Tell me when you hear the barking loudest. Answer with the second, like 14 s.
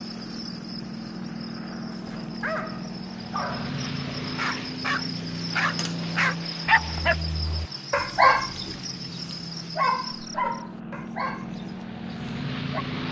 8 s.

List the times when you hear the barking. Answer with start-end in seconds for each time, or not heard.
1.9-12.8.